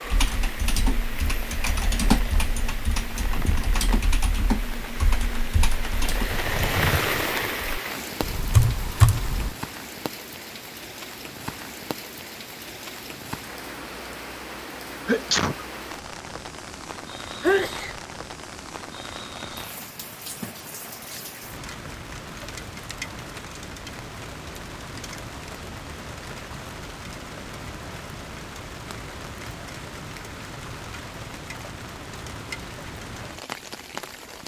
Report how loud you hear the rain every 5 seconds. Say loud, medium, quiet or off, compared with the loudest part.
medium, loud, medium, medium, medium, medium, medium.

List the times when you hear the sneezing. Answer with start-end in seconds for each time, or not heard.
15.1-15.7, 17.4-18.0.